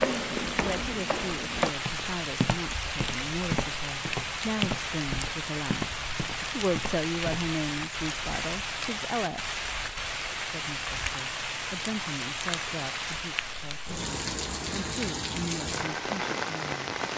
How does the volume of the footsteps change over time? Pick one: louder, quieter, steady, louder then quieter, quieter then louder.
quieter.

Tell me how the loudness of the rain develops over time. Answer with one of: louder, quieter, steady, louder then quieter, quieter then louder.
steady.